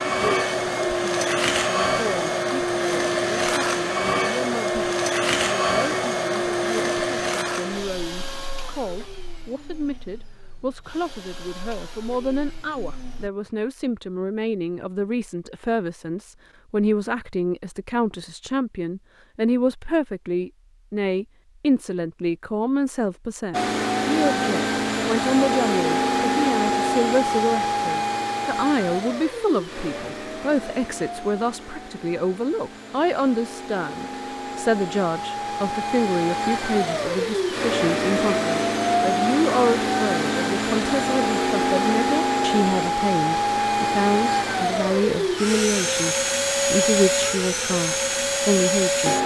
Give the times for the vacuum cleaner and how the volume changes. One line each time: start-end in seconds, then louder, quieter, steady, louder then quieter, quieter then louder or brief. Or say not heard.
0.0-13.3 quieter
23.5-49.2 quieter then louder.